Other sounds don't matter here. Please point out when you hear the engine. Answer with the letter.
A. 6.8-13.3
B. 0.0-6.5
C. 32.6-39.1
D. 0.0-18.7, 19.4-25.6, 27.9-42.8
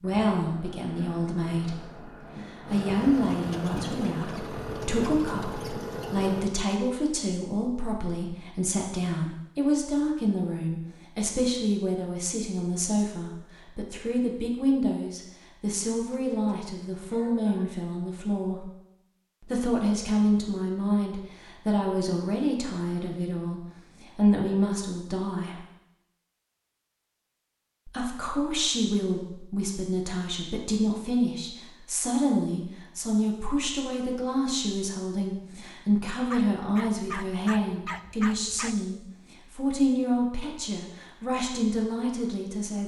B.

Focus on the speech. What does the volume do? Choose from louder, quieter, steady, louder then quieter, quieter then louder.
steady.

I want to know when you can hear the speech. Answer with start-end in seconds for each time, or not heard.
0.0-18.7, 19.4-25.6, 27.9-42.8.